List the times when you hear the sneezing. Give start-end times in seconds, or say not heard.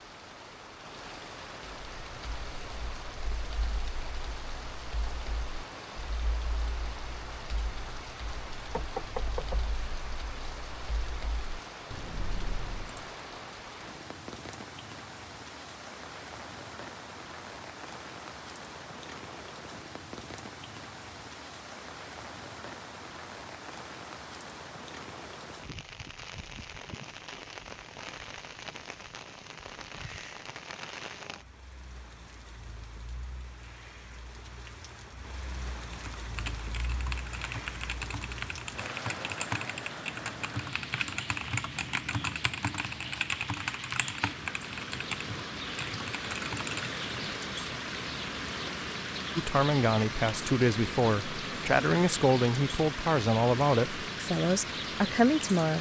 not heard.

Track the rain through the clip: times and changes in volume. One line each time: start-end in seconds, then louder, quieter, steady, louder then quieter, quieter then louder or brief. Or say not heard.
0.0-55.7 louder.